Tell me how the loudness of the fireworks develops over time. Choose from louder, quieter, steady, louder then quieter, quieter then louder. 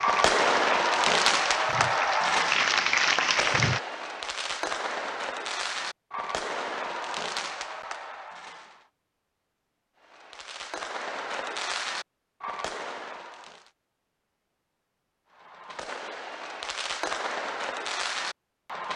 quieter.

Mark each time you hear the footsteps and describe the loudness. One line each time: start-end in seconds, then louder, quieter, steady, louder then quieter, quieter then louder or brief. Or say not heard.
not heard.